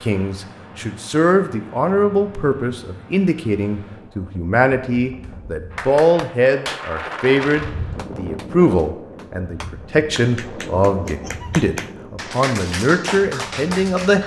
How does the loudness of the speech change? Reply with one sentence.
The volume of the speech stays about the same.